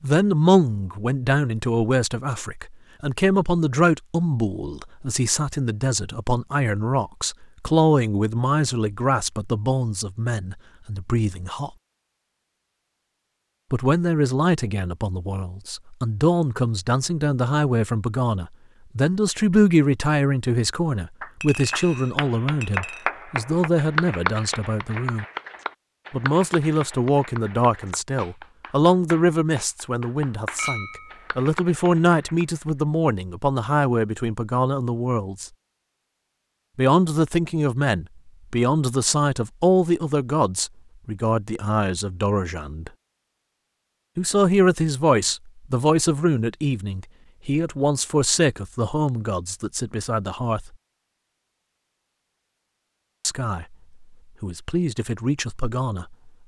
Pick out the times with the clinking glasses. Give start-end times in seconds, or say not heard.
21.4-23.1, 30.6-31.2.